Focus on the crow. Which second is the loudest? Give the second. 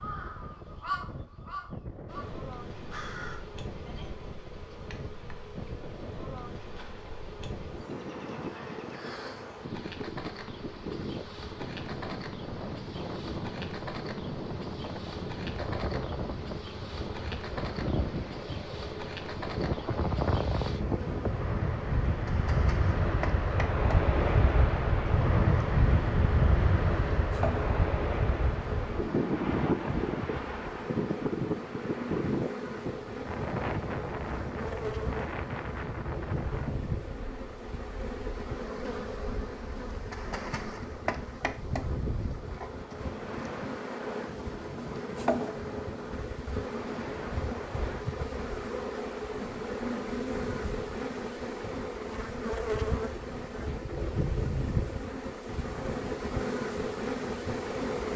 1 s.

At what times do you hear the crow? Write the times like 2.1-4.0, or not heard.
0.0-3.4.